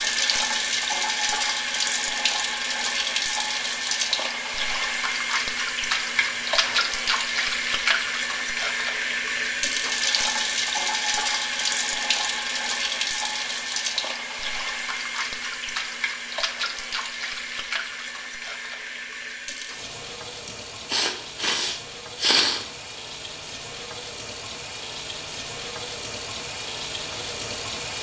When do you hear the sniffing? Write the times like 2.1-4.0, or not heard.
6.2-6.8, 20.4-22.6.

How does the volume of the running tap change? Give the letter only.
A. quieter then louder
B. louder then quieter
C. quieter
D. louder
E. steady
C.